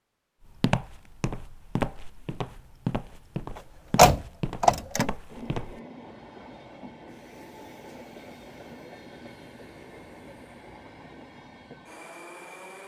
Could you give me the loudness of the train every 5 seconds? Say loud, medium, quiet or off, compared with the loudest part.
off, loud, loud.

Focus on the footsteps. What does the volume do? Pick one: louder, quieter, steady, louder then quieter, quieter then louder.
louder then quieter.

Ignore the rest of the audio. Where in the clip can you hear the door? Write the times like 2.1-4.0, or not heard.
4.0-5.1.